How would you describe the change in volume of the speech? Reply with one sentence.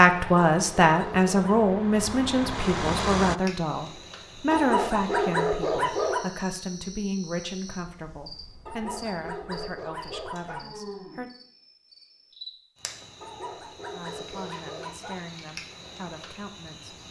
The volume of the speech goes down.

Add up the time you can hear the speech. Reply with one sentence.
You can hear the speech for 14 seconds altogether.